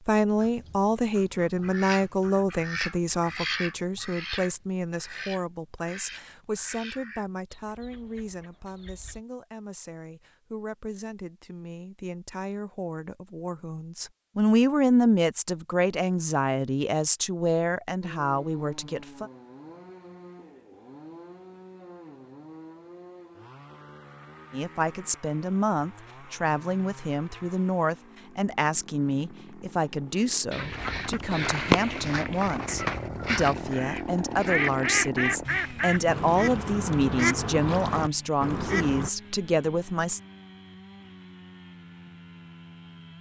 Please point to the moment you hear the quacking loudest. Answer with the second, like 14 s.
32 s.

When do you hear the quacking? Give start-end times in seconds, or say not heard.
0.3-9.2, 30.5-39.1.